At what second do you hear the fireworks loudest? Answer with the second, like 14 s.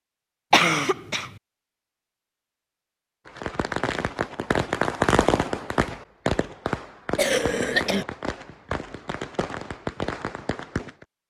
5 s.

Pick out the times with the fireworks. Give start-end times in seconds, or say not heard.
3.2-11.1.